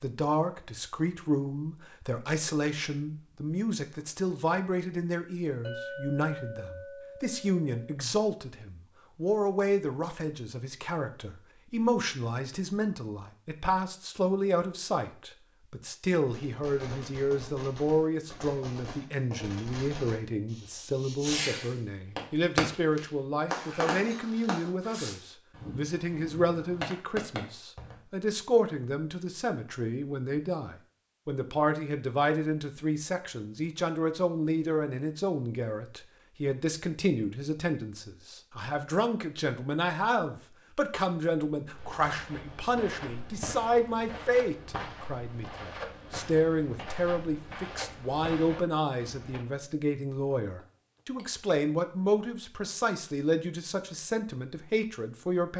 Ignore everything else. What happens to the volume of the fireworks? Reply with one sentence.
The loudness of the fireworks goes up, then down.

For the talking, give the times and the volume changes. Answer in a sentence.
The talking can be heard from 0.0 to 55.5 s, at a steady volume.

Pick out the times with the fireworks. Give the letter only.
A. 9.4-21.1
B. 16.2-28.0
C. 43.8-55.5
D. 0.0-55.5
B.